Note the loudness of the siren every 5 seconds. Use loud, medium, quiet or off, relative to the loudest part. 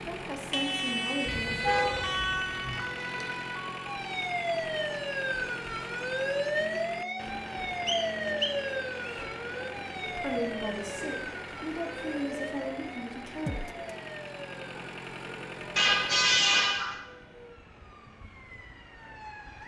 loud, loud, medium, quiet.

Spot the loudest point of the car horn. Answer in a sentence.
The loudest moment of the car horn is at 16 seconds.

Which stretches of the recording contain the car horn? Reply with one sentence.
The car horn can be heard from 1.2 to 2.8 s and from 15.8 to 16.9 s.